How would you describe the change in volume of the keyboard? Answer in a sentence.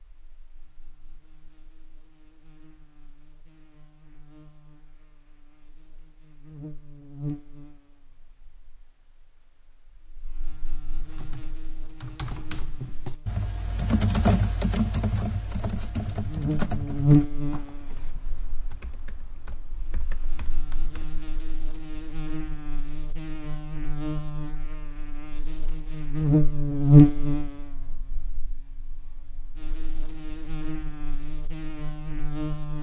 The loudness of the keyboard goes up, then down.